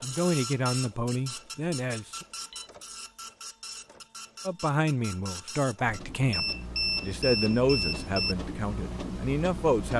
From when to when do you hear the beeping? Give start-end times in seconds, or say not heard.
2.0-2.7, 6.3-8.3.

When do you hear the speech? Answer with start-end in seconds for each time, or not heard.
0.0-2.2, 4.5-9.9.